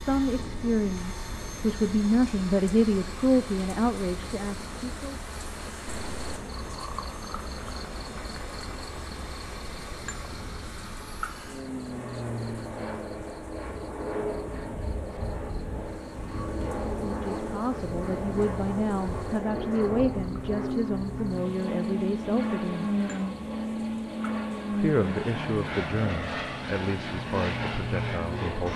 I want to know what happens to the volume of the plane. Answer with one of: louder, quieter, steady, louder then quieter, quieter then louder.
louder.